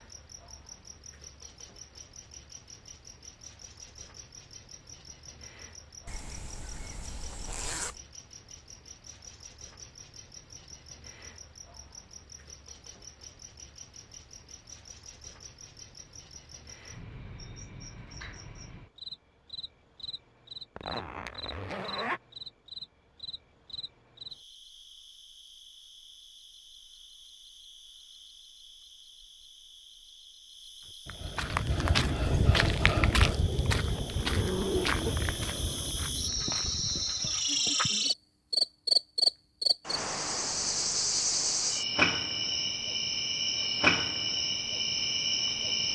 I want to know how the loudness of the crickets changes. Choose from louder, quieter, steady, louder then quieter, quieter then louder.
louder.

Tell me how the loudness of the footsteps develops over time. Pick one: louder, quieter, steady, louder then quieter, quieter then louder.
quieter.